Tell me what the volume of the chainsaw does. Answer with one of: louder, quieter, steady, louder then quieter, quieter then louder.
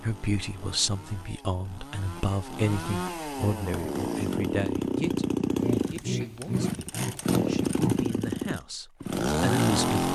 louder.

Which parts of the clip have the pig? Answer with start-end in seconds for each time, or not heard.
5.5-8.1.